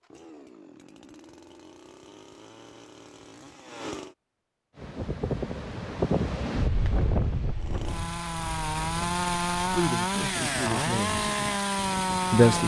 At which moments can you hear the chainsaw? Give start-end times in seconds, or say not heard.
0.0-4.2, 7.5-12.6.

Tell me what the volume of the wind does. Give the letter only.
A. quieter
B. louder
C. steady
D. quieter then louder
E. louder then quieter
A.